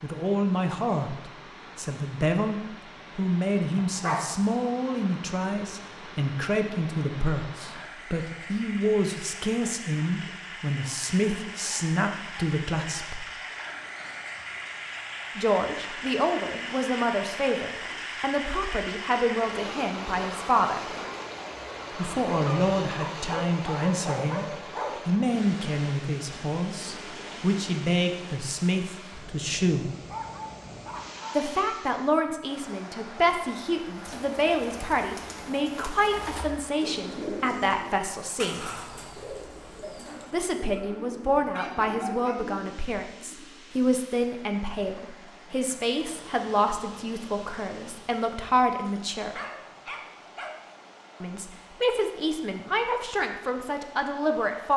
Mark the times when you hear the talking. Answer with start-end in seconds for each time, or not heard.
0.0-13.2, 15.3-20.9, 21.9-29.9, 31.4-38.7, 40.3-49.4, 51.2-54.7.